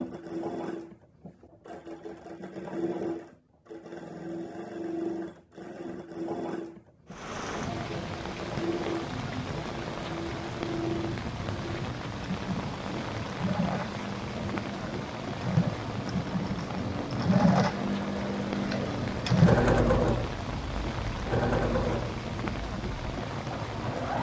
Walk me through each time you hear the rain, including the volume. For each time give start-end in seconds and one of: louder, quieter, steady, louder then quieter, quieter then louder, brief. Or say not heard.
7.0-24.1 steady.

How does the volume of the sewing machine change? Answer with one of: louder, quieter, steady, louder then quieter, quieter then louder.
louder.